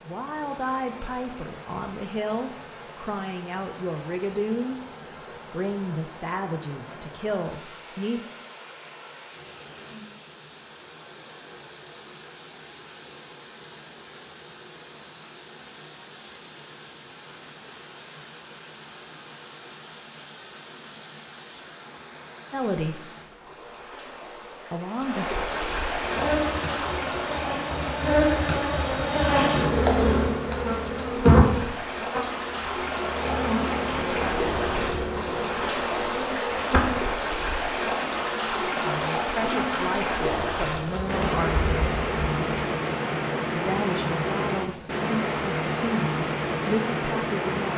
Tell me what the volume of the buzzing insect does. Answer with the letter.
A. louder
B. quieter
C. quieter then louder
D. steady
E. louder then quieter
B.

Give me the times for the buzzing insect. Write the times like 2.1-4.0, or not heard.
26.0-42.6.